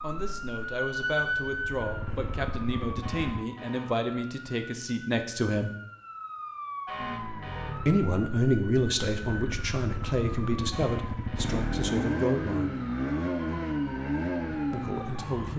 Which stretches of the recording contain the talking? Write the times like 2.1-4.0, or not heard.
0.0-5.7, 7.8-12.8, 14.7-15.5.